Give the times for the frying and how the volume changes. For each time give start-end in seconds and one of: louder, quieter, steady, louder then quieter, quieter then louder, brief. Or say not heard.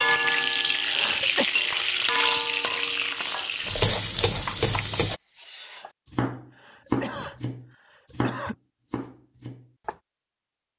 0.0-5.2 steady.